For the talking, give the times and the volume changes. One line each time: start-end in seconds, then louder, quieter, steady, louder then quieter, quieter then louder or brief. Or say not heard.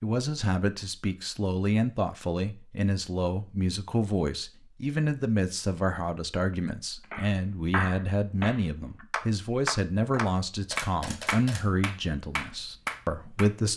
0.0-13.7 steady.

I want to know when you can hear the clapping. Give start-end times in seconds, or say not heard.
7.1-13.5.